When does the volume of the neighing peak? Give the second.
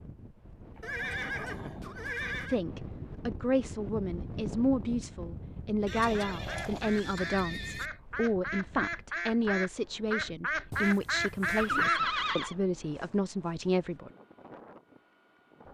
12 s.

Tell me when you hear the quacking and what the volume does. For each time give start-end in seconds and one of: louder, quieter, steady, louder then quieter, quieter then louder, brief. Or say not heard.
5.8-12.0 louder.